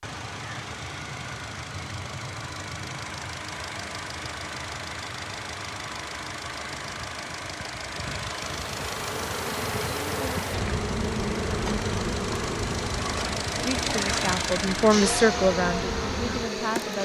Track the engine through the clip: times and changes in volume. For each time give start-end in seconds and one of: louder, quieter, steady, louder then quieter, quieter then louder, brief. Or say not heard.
0.0-17.0 louder.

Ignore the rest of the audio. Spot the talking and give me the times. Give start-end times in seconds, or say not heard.
13.6-17.0.